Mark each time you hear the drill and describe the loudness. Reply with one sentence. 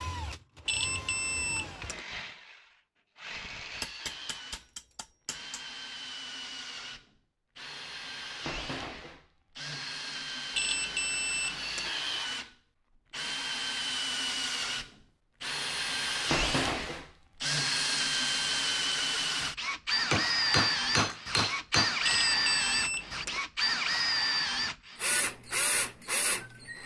You can hear the drill from 0.0 to 26.8 s, getting louder.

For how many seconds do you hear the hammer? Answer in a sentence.
The hammer can be heard for 4 seconds in total.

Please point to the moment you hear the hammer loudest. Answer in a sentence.
The volume of the hammer peaks at 21 seconds.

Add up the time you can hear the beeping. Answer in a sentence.
The beeping can be heard for 4 seconds in total.